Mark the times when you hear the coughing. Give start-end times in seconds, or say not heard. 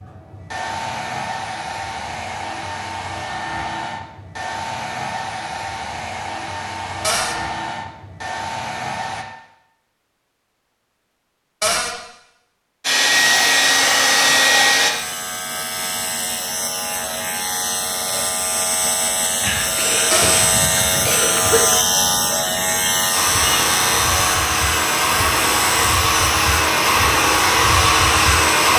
19.4-21.6.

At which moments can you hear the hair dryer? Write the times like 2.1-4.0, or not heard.
0.0-9.2, 12.8-14.9, 23.1-28.7.